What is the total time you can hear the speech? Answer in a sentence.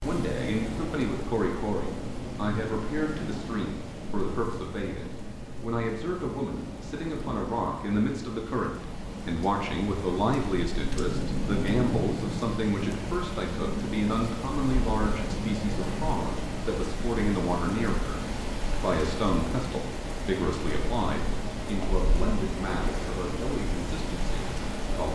The speech can be heard for 25 seconds in total.